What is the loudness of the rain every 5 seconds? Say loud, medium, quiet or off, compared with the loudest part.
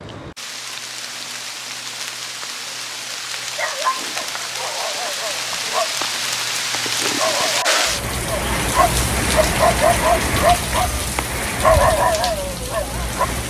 medium, loud, loud.